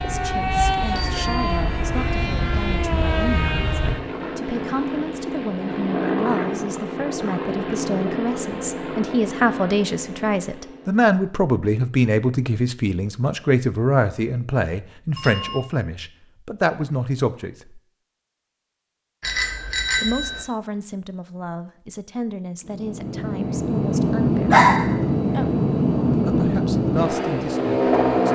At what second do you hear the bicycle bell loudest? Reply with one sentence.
The volume of the bicycle bell peaks at 20 seconds.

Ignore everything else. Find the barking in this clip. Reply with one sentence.
You can hear the barking from 24.5 to 25.4 s.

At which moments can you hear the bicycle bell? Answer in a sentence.
You can hear the bicycle bell from 0.9 to 1.6 s, from 15.2 to 15.6 s and from 19.2 to 20.4 s.